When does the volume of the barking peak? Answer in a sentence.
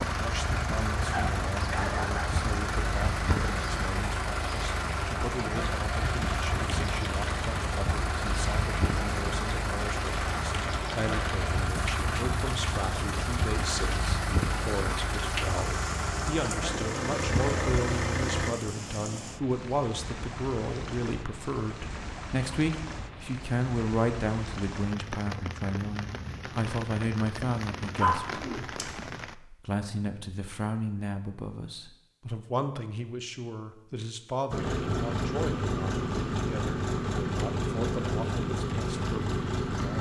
The volume of the barking peaks at 28 seconds.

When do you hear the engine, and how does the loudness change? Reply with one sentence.
The engine can be heard from 0.0 to 18.6 s, at a steady volume; and from 34.5 to 39.9 s, at a steady volume.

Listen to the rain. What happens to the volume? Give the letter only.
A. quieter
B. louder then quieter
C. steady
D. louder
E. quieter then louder
C.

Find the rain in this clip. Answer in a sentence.
The rain can be heard from 0.0 to 29.4 s.